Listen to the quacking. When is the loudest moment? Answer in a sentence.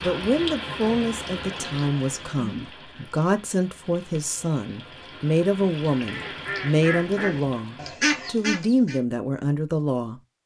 The volume of the quacking peaks at 8 seconds.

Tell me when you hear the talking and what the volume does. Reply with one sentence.
You can hear the talking from 0.0 to 10.2 s, at a steady volume.